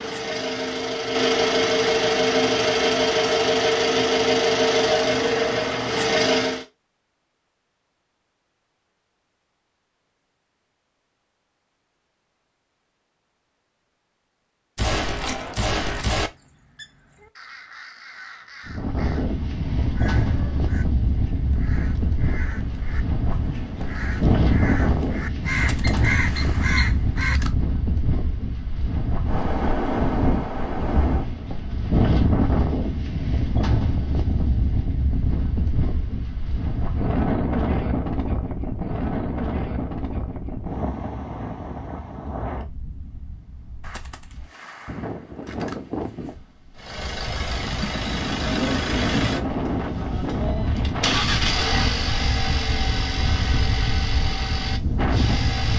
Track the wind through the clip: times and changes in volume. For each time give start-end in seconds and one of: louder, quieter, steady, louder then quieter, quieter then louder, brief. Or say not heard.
18.6-55.7 quieter then louder.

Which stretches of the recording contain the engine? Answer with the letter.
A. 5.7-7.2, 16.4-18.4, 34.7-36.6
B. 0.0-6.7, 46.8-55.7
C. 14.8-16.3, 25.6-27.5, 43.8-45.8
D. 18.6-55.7
B.